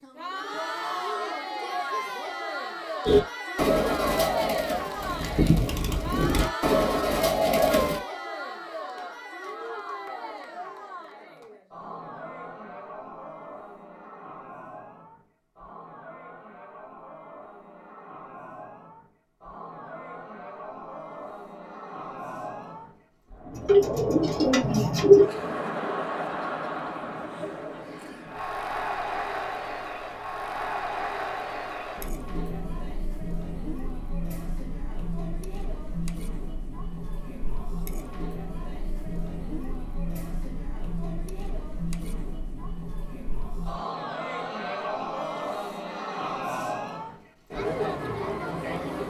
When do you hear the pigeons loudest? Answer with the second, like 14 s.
25 s.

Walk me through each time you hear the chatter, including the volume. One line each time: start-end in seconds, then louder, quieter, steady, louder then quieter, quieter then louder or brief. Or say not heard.
0.0-49.0 quieter then louder.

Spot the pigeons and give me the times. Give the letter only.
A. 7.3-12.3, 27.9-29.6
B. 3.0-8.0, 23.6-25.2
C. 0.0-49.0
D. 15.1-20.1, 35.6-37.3
B.